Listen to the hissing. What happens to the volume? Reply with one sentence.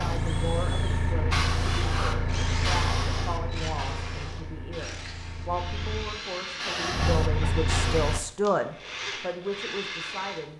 The loudness of the hissing goes down, then up.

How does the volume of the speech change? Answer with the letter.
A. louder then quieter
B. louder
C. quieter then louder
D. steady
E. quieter
B.